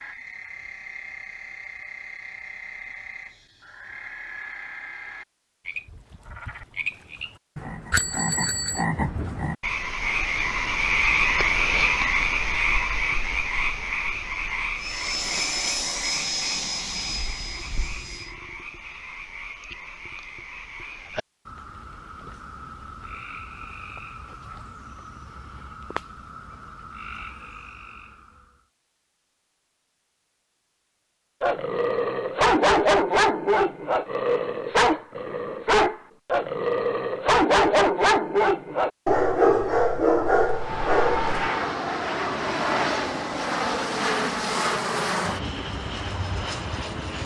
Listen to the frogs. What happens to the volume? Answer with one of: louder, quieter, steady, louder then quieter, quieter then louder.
louder then quieter.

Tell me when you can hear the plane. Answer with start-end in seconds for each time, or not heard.
14.8-18.4, 40.4-47.2.